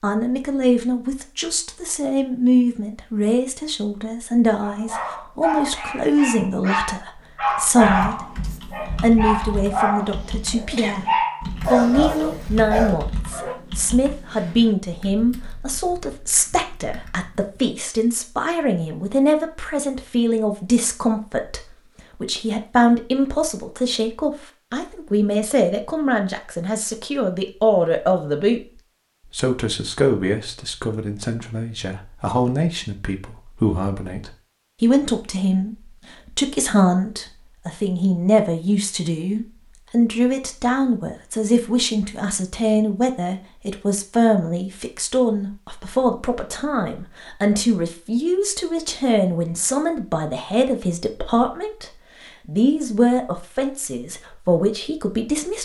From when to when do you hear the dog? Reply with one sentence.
The dog can be heard from 4.6 to 13.6 s.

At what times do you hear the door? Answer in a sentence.
The door can't be heard in this clip.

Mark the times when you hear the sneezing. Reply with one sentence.
The sneezing can be heard from 10.0 to 11.1 s.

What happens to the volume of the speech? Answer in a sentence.
The loudness of the speech stays about the same.